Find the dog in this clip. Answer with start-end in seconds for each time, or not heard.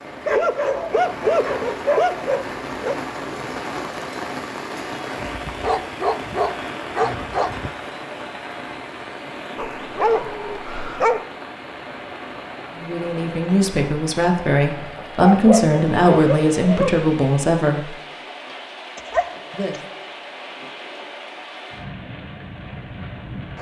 0.2-3.0, 5.2-7.7, 9.6-11.2, 15.2-17.0, 18.9-19.8.